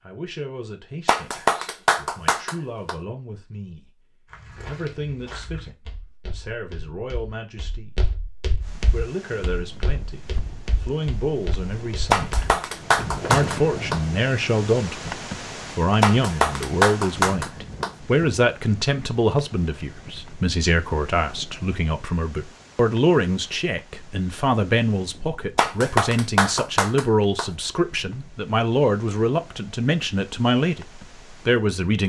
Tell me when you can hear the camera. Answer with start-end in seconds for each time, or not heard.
not heard.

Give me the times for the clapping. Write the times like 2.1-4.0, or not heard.
1.1-3.0, 12.1-14.0, 16.0-17.9, 25.6-27.5.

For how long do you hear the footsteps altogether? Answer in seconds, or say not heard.
10 s.